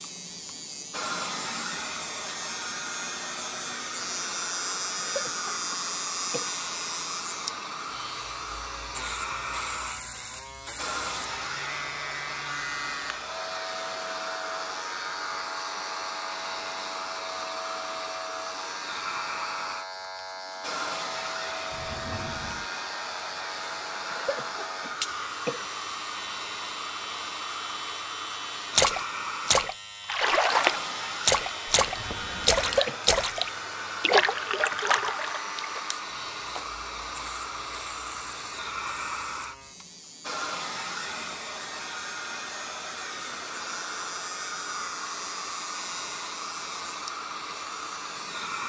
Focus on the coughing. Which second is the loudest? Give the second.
33 s.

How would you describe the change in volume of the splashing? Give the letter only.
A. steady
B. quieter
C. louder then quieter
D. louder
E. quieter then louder
B.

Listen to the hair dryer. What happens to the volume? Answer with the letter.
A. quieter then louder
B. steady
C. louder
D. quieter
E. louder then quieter
B.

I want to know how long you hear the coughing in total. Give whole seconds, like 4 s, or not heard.
4 s.